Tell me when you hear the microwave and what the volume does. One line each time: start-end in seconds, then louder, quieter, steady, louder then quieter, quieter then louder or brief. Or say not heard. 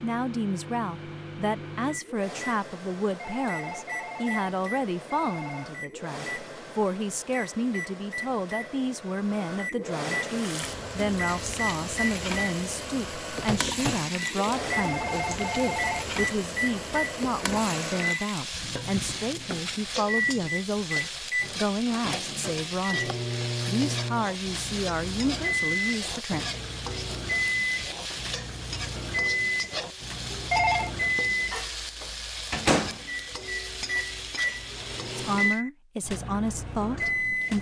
0.0-37.5 louder.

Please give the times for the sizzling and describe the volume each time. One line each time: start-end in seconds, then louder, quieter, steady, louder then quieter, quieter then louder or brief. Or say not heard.
10.2-35.6 steady.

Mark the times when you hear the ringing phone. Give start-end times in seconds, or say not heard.
3.2-5.7, 14.7-16.1, 30.3-30.9.